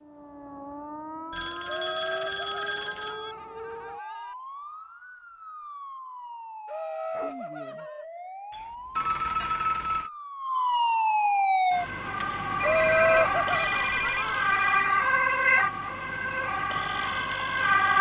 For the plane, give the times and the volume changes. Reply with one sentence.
You can't hear the plane here.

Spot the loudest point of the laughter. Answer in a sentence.
The loudest moment of the laughter is at 13 seconds.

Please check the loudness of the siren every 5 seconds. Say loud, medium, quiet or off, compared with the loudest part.
quiet, quiet, loud, loud.